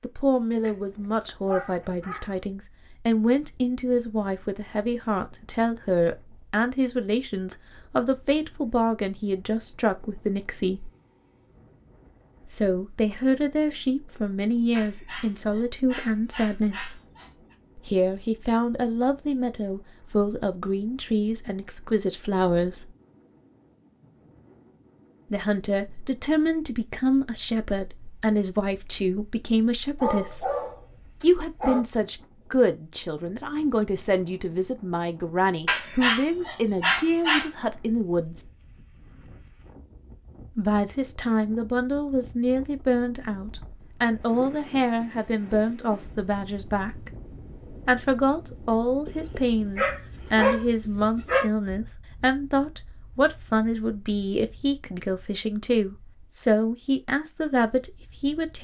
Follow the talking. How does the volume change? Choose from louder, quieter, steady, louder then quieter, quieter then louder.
steady.